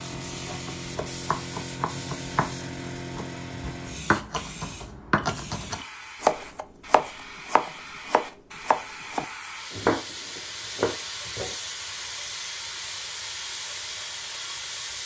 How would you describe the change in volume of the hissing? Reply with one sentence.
The volume of the hissing goes down, then up.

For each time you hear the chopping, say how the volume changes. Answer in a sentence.
You can hear the chopping from 0.3 to 11.6 s, getting louder.